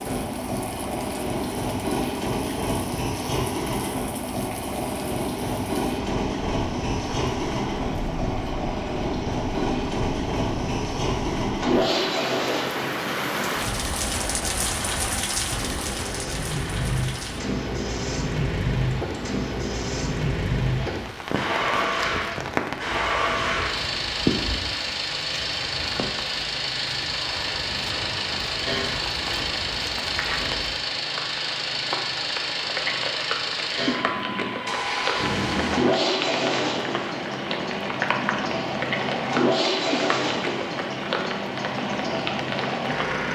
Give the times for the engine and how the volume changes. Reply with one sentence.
You can hear the engine from 0.0 to 43.3 s, at a steady volume.